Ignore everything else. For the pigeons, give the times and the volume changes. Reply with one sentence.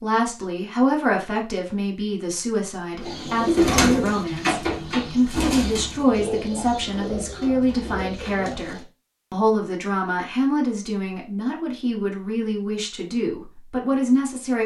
The pigeons can be heard from 3.0 to 8.8 s, getting quieter.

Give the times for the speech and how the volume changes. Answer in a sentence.
You can hear the speech from 0.0 to 14.6 s, at a steady volume.